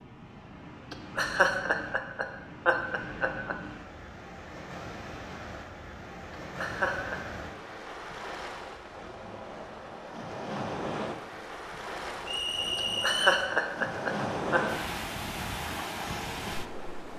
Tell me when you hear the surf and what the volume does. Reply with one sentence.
The surf can be heard from 0.0 to 17.1 s, getting louder.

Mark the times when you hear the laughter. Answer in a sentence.
You can hear the laughter from 0.9 to 3.5 s, from 6.5 to 7.2 s and from 12.8 to 14.6 s.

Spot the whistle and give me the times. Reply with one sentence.
The whistle can be heard from 12.2 to 13.4 s.